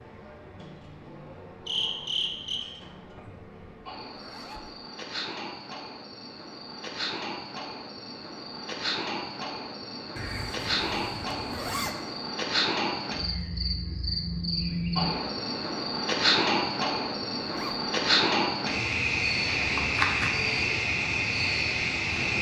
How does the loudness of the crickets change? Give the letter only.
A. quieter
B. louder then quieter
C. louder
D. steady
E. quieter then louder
C.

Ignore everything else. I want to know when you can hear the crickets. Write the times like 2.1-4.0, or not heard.
0.0-22.3.